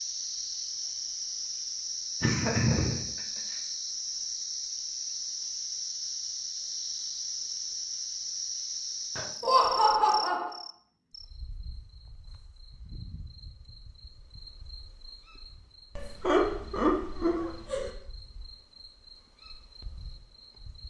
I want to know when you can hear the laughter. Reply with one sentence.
You can hear the laughter from 2.2 to 3.2 s, from 9.4 to 10.5 s and from 15.9 to 17.9 s.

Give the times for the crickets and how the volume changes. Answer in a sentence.
You can hear the crickets from 0.0 to 20.8 s, getting quieter.